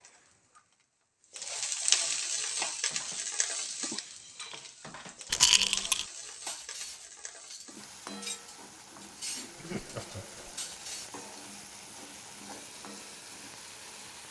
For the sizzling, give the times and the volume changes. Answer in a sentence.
The sizzling can be heard from 0.0 to 14.2 s, getting quieter.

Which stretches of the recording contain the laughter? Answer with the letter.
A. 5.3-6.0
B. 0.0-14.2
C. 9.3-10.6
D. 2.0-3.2
C.